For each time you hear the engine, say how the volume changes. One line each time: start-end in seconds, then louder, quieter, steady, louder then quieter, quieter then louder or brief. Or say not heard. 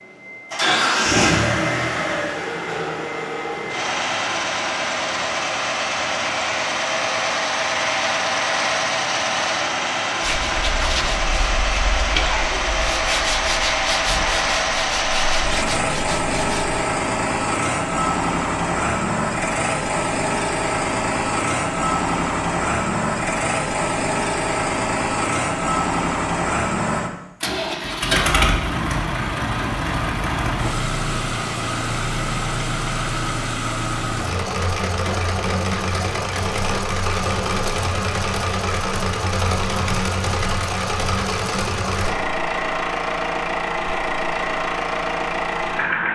0.0-46.1 steady.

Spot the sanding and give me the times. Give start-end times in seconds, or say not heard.
10.2-16.6.